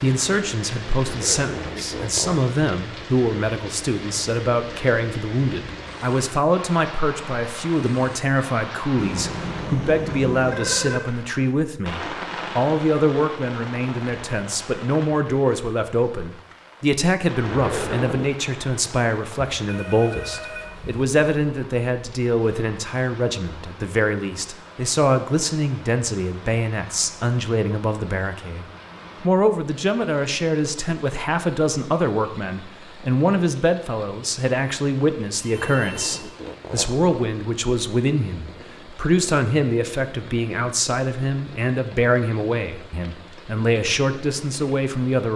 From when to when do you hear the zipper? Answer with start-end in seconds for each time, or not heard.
1.1-2.4, 17.4-18.2, 35.8-37.0.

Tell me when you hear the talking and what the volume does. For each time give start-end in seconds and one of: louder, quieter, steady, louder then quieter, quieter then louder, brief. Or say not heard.
0.0-45.3 steady.